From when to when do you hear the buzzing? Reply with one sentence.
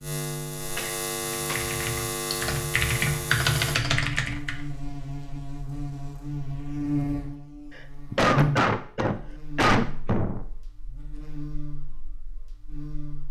You can hear the buzzing from 0.0 to 13.2 s.